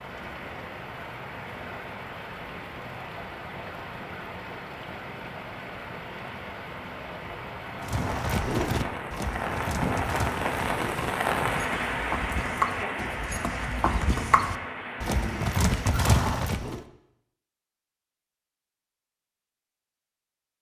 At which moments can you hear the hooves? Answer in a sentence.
The hooves can be heard from 7.8 to 16.8 s.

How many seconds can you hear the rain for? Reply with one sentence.
You can hear the rain for 16 seconds altogether.